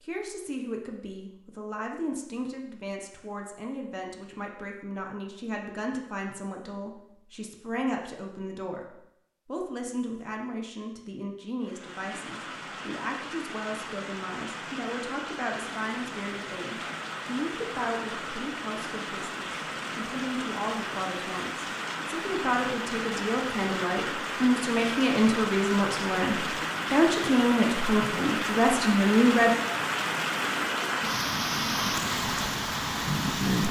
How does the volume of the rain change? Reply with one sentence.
The loudness of the rain goes up.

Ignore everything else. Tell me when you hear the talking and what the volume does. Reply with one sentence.
You can hear the talking from 0.0 to 29.6 s, getting louder.